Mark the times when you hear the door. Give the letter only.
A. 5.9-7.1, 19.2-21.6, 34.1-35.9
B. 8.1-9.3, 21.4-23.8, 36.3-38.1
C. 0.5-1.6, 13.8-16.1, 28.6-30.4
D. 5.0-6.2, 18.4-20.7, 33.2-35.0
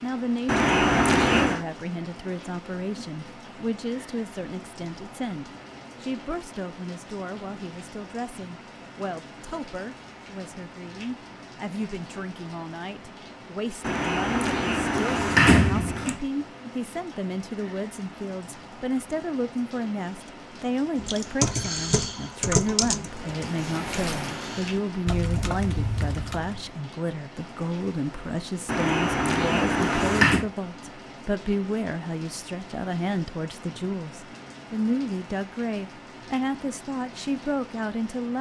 C.